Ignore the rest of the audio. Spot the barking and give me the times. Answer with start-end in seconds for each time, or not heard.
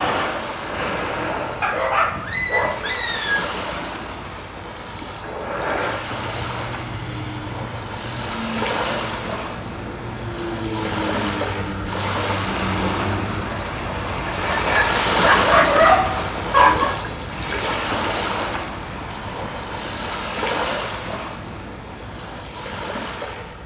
1.6-3.4, 14.2-16.9.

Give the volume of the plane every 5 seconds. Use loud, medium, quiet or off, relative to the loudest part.
loud, medium, loud, off, off.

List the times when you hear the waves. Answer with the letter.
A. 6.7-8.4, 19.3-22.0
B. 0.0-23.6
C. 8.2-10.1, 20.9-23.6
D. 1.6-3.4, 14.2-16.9
B.